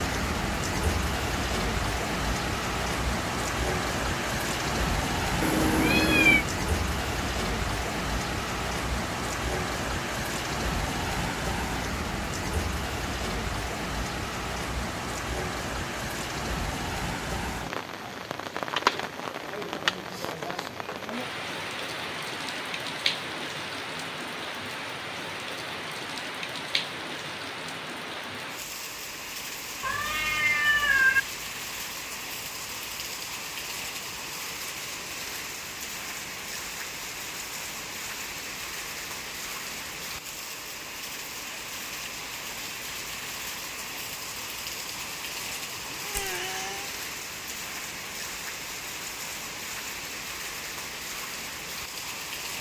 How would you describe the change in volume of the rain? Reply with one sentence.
The volume of the rain goes down.